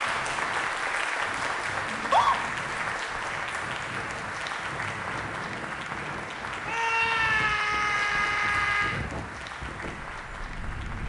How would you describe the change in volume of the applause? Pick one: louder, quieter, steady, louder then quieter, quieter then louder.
quieter.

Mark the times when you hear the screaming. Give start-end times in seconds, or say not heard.
1.9-2.4, 6.7-9.1.